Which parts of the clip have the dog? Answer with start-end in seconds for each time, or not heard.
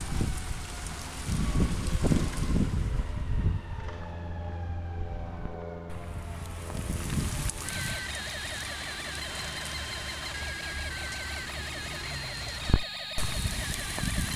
not heard.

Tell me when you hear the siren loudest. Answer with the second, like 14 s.
2 s.